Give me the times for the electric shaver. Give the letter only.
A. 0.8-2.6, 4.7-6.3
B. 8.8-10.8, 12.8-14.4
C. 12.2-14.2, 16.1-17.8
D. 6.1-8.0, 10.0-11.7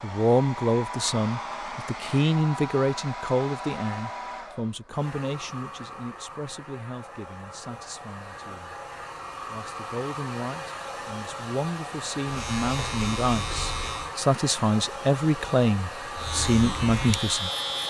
C.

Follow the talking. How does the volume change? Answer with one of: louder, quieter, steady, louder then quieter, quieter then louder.
quieter then louder.